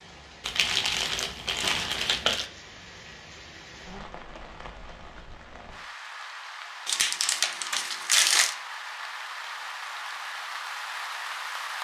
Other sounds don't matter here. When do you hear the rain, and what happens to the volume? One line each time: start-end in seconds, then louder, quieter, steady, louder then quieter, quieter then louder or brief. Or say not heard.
0.0-11.7 louder.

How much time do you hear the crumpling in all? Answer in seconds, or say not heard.
4 s.